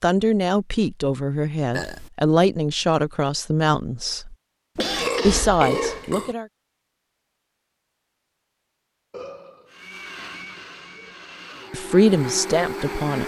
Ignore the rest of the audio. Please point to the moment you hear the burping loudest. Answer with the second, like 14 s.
5 s.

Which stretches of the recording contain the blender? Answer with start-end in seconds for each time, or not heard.
9.7-13.2.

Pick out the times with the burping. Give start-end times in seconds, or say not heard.
1.7-2.1, 4.8-6.3, 9.1-11.2.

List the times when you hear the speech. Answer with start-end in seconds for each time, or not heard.
0.0-4.3, 5.2-6.5, 11.7-13.2.